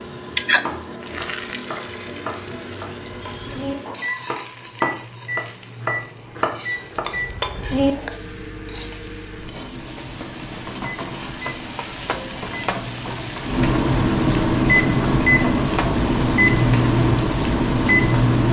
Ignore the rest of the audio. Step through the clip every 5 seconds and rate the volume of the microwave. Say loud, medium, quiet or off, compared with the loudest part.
quiet, quiet, medium, loud.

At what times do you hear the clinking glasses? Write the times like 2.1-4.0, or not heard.
7.0-8.2.